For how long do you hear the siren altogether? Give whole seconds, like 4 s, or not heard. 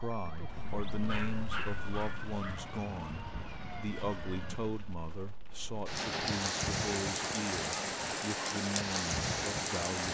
5 s.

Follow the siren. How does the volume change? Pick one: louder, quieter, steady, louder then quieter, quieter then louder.
steady.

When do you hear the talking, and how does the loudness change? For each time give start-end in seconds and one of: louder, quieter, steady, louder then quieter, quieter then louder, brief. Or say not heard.
0.0-10.0 steady.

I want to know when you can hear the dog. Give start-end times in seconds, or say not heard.
1.0-2.6.